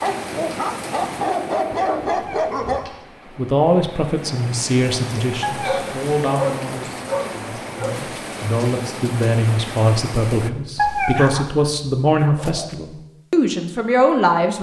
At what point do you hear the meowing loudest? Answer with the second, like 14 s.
11 s.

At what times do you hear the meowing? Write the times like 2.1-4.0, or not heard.
2.1-3.0, 5.4-5.9, 10.8-11.4.